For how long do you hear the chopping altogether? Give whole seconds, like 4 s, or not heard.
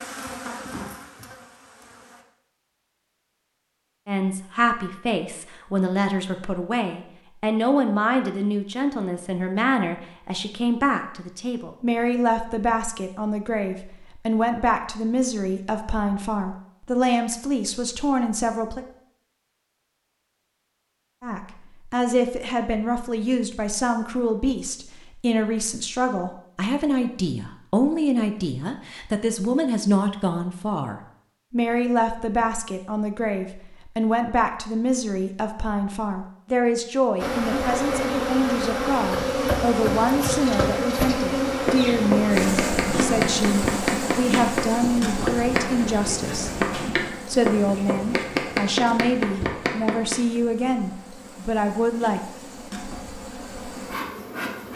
11 s.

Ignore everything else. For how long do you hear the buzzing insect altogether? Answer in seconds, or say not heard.
20 s.